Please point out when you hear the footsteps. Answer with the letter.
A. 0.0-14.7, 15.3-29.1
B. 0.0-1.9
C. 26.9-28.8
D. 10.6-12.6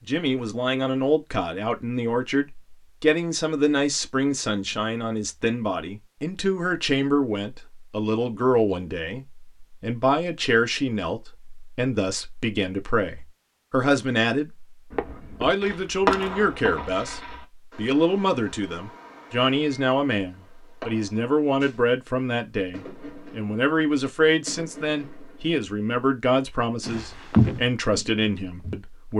C.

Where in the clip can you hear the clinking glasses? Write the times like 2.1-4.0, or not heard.
not heard.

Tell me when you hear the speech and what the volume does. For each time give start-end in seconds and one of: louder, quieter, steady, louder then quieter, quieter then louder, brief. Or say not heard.
0.0-14.7 steady
15.3-29.1 steady.